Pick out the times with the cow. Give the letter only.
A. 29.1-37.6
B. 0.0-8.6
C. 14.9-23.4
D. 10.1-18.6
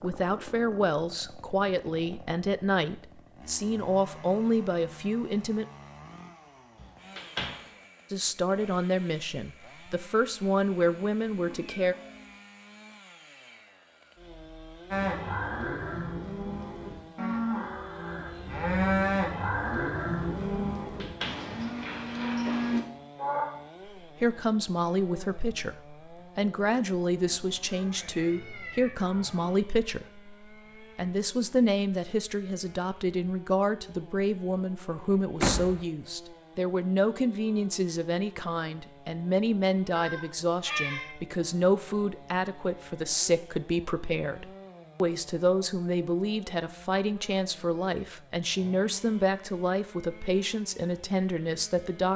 C.